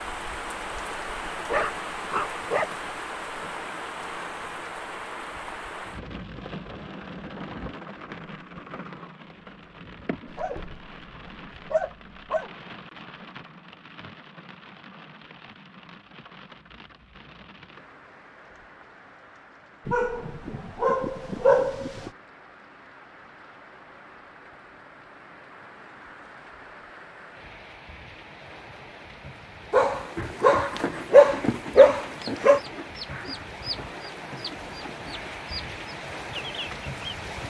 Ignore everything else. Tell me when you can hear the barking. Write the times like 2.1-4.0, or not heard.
1.4-2.7, 10.2-12.5, 19.9-22.1, 29.7-32.6.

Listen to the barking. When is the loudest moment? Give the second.
31 s.